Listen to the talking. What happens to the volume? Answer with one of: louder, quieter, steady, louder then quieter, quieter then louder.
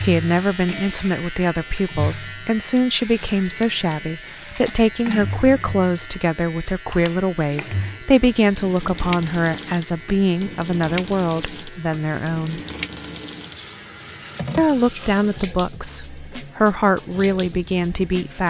steady.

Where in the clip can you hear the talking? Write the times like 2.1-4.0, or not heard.
0.0-12.6, 14.6-18.4.